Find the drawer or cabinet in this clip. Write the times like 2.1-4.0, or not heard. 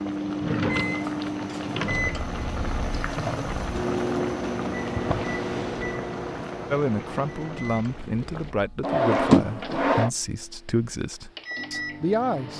0.3-2.3, 5.0-6.0, 8.8-10.1.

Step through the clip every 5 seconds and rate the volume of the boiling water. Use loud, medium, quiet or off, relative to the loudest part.
loud, medium, off.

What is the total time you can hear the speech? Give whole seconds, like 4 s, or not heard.
6 s.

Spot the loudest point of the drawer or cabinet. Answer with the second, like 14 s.
9 s.